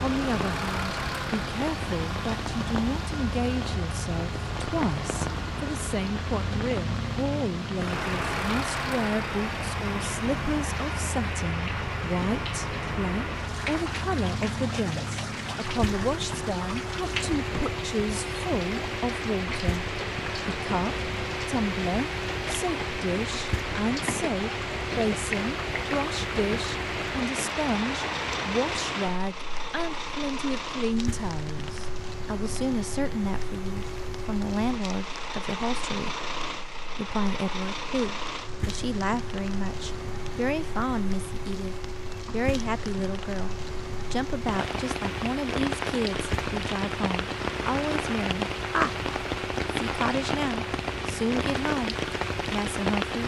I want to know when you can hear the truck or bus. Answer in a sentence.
The truck or bus can be heard from 0.0 to 53.2 s.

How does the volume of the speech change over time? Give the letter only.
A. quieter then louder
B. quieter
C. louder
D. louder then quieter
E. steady
E.